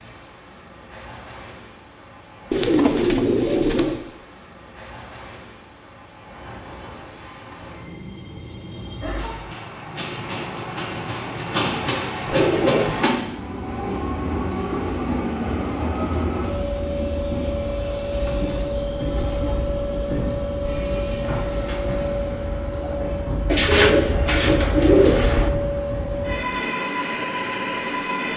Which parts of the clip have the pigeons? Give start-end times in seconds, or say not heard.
2.5-4.0, 12.2-12.9, 23.4-25.5.